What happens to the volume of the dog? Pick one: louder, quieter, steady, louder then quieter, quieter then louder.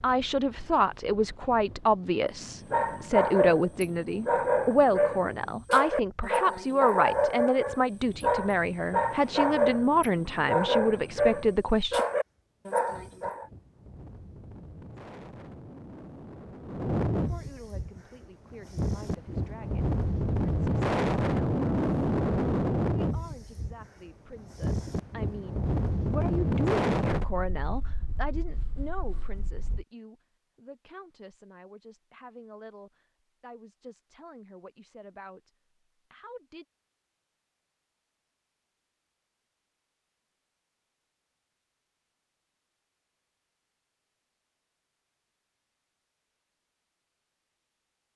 steady.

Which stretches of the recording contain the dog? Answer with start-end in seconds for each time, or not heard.
2.7-13.4.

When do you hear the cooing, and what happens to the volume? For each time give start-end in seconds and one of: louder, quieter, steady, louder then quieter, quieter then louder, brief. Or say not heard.
not heard.